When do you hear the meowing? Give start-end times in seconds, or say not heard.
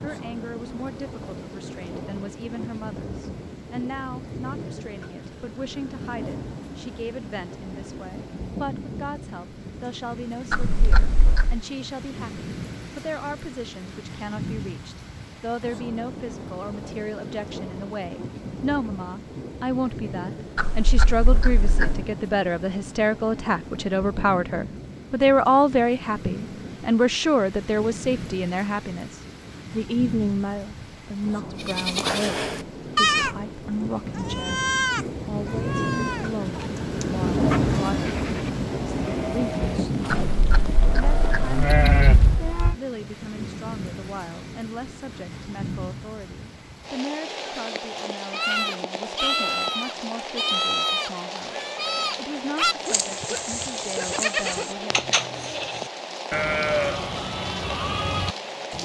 10.5-11.7, 20.6-22.1, 40.1-42.8.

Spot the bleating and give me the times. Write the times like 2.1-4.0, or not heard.
31.6-33.4, 34.1-42.4, 48.3-58.8.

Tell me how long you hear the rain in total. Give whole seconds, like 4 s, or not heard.
59 s.